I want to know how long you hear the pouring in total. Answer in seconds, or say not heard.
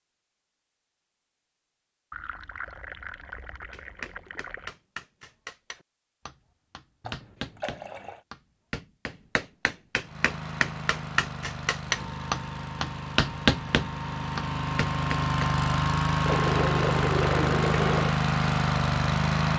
6 s.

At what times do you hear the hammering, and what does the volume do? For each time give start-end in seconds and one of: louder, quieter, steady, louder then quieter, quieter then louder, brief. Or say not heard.
3.7-15.5 louder.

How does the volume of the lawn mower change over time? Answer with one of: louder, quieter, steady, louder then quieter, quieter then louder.
louder.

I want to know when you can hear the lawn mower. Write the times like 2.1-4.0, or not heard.
10.0-19.5.